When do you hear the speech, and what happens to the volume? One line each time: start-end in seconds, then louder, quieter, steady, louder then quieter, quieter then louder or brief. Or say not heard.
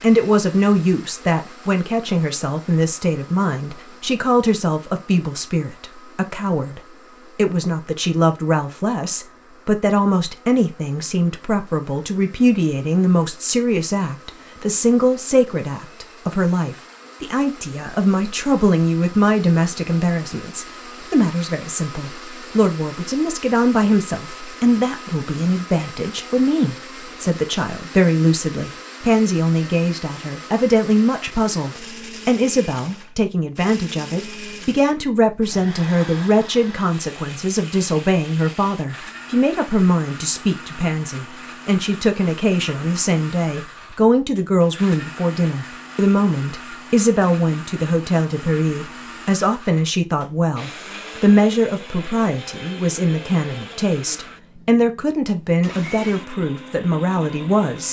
0.0-57.8 steady.